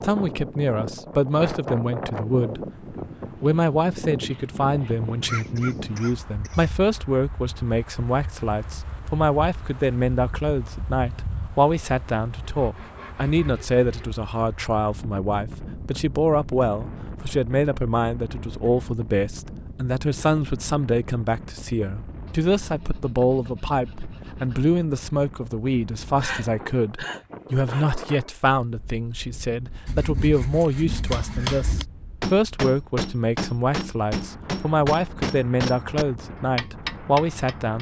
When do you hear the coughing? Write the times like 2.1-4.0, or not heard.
5.2-6.7, 26.2-27.9.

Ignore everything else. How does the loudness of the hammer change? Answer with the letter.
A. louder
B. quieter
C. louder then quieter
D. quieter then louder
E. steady
E.